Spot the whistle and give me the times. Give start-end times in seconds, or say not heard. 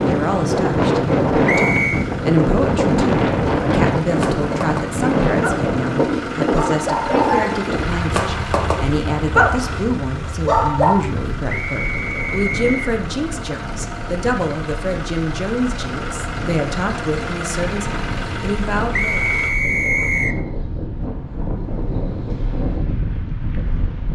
1.4-2.0, 11.4-12.9, 18.9-20.4.